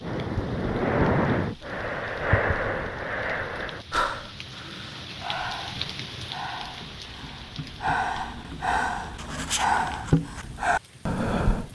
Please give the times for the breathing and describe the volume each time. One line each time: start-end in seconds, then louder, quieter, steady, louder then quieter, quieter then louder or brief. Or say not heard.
0.0-11.6 quieter then louder.